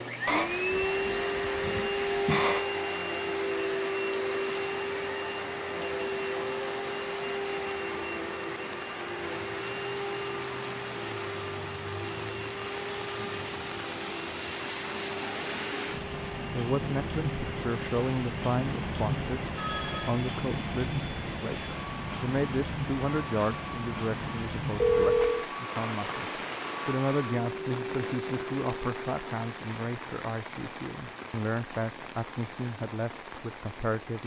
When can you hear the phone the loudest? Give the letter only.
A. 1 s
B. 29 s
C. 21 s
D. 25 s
D.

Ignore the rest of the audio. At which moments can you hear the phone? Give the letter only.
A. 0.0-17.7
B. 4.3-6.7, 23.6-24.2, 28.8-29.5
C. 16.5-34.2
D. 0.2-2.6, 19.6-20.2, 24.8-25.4
D.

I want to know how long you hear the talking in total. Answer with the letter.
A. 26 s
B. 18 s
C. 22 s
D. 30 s
B.